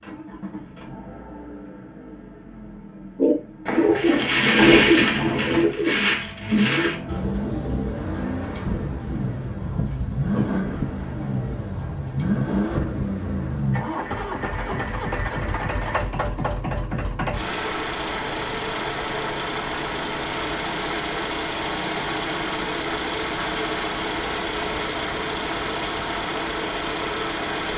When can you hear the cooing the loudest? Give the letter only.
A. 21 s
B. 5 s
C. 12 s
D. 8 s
B.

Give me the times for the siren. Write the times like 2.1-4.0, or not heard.
not heard.